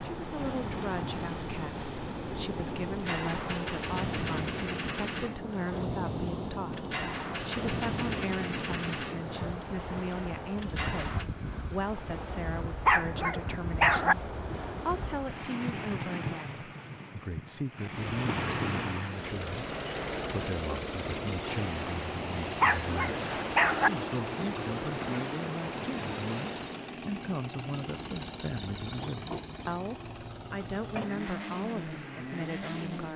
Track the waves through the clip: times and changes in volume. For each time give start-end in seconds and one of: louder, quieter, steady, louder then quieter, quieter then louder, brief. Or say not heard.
0.0-26.9 steady.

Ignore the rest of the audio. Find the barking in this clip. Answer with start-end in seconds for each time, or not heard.
12.8-14.2, 22.6-23.9.